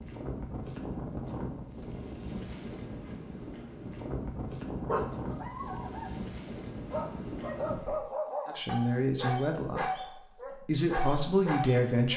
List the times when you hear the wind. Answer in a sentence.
The wind can be heard from 0.0 to 8.0 s.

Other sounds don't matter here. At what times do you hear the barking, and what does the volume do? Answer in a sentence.
You can hear the barking from 4.8 to 12.1 s, getting louder.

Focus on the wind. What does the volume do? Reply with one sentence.
The volume of the wind stays about the same.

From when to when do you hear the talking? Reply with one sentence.
The talking can be heard from 8.6 to 12.1 s.